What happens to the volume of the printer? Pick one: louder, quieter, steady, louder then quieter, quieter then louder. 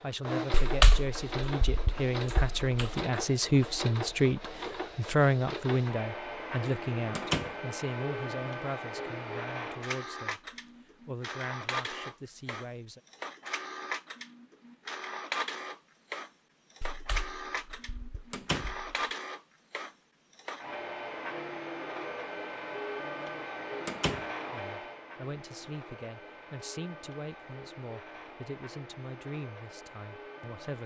quieter.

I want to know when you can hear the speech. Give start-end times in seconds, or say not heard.
0.0-13.0, 24.4-30.8.